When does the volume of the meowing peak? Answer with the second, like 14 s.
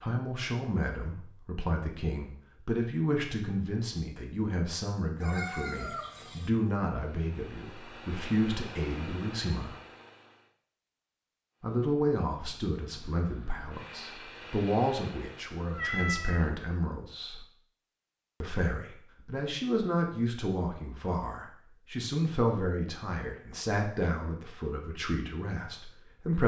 16 s.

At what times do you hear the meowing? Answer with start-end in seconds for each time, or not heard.
5.2-6.5, 15.7-16.5.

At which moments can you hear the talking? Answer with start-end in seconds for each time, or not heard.
0.0-9.8, 11.6-17.4, 18.4-26.4.